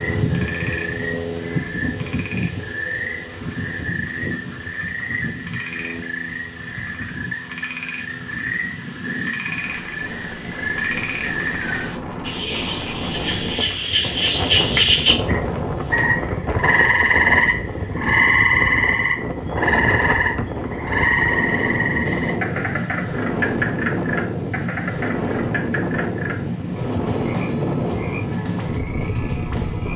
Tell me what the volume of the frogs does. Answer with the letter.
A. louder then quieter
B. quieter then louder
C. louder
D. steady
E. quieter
A.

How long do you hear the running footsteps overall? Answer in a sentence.
You can't hear the running footsteps here.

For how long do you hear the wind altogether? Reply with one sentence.
You can hear the wind for 30 seconds altogether.